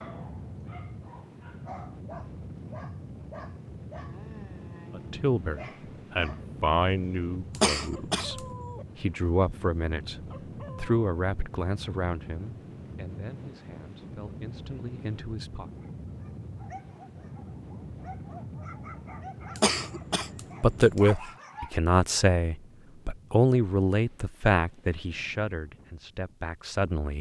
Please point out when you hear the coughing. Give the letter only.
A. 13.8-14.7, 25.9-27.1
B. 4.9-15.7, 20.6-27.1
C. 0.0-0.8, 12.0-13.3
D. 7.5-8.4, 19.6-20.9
D.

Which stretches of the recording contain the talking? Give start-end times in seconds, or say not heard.
4.9-15.7, 20.6-27.1.